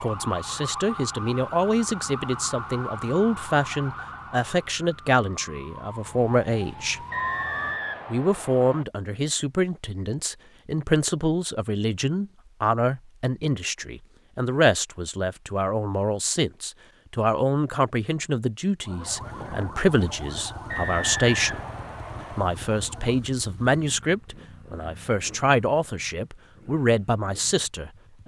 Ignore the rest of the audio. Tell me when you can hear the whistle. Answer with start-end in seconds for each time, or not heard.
7.1-8.8, 20.6-22.4.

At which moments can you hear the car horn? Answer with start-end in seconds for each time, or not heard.
not heard.